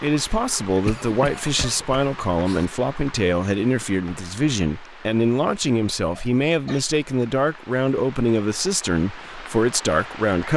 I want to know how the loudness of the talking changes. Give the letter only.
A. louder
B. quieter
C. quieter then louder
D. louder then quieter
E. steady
E.